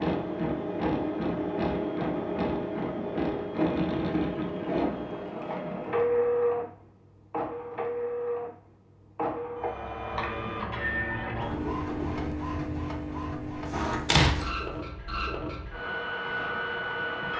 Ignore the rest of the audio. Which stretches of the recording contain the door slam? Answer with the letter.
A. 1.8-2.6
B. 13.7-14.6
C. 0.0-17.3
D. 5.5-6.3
B.